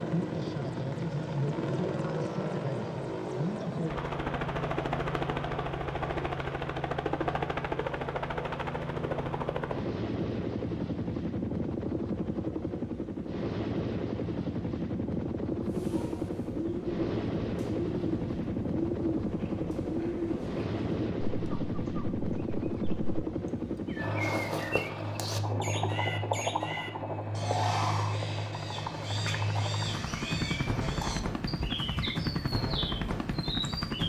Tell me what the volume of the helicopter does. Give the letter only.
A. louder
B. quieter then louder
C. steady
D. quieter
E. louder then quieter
C.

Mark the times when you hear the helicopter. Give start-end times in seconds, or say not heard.
0.0-34.0.